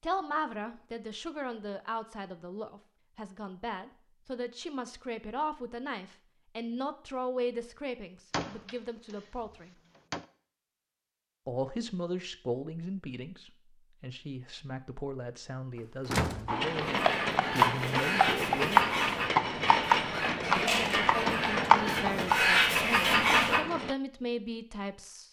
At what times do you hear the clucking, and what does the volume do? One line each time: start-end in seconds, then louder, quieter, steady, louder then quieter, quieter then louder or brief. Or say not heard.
16.8-23.6 louder.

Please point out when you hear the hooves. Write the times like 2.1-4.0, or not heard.
16.4-23.9.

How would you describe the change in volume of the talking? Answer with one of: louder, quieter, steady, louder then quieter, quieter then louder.
steady.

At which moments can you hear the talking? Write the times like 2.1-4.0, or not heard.
0.0-9.7, 11.4-18.9, 20.4-25.2.